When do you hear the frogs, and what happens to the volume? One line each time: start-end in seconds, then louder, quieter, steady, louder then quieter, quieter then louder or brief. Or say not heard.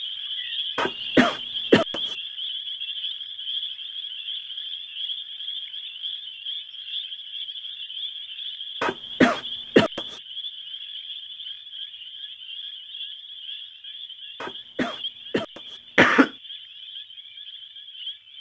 0.0-18.3 quieter.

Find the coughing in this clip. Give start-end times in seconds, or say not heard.
0.8-2.0, 8.8-10.0, 14.4-16.3.